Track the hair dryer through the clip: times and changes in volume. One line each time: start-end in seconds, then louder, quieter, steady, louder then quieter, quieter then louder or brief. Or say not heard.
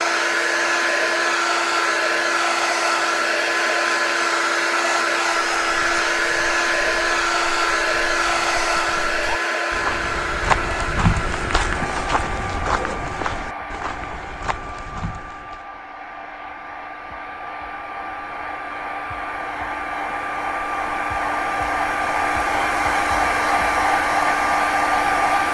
0.0-25.4 quieter then louder.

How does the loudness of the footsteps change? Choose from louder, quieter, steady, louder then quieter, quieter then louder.
louder then quieter.